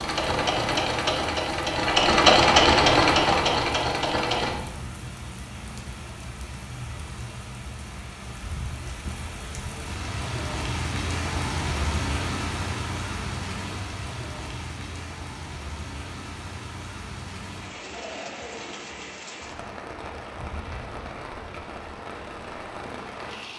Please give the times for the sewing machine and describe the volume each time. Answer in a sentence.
You can hear the sewing machine from 0.0 to 4.5 s, getting louder then quieter.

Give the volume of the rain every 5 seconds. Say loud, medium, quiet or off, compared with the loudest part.
medium, medium, loud, medium, medium.